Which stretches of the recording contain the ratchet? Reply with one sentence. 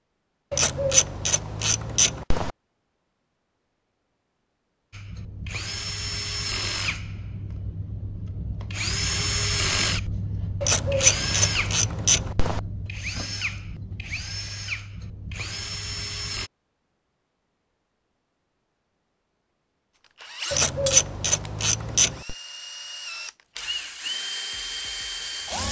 You can hear the ratchet from 0.5 to 2.5 s, from 10.6 to 12.6 s and from 20.5 to 22.4 s.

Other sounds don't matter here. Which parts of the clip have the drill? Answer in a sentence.
You can hear the drill from 4.9 to 16.5 s and from 20.1 to 25.6 s.